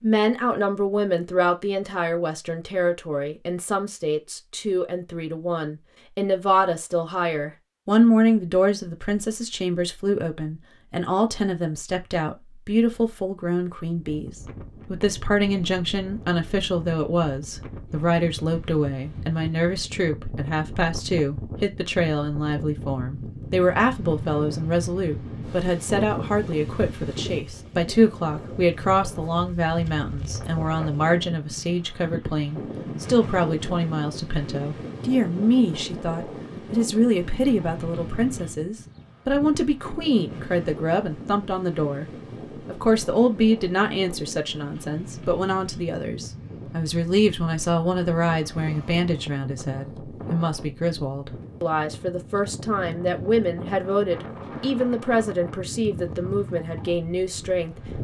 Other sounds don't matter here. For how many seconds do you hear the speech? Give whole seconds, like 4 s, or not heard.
57 s.